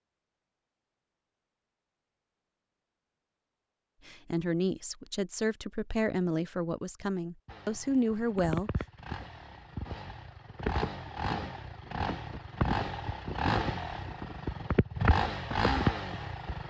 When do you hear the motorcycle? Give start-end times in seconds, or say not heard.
7.5-16.6.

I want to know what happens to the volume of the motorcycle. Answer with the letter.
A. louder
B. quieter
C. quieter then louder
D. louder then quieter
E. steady
A.